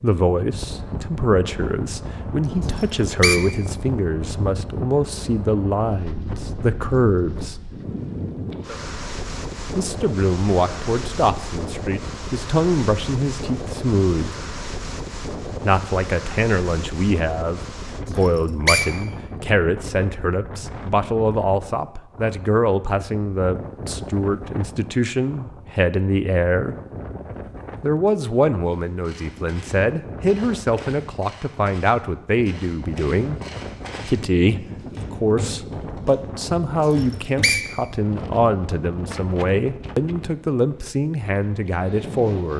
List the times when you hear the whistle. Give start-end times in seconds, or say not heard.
2.7-3.4, 18.1-18.9, 36.9-37.6.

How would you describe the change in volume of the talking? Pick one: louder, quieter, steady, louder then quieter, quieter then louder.
steady.